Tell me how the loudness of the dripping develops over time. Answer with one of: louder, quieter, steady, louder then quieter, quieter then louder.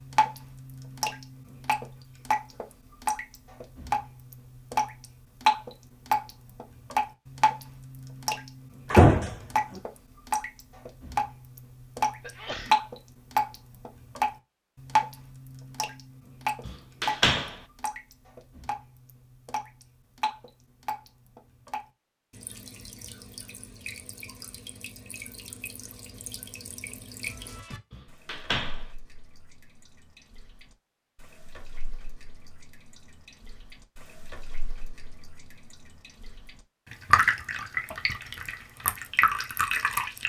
quieter then louder.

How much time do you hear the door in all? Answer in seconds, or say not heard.
3 s.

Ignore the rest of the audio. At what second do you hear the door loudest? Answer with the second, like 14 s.
9 s.